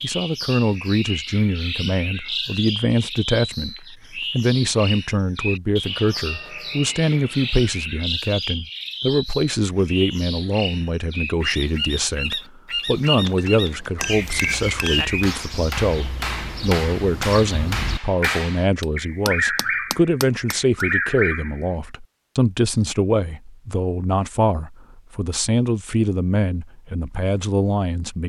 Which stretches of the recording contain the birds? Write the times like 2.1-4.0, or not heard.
0.0-21.6.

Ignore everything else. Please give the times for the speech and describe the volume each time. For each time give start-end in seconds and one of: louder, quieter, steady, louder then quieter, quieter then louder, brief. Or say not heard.
0.0-28.2 steady.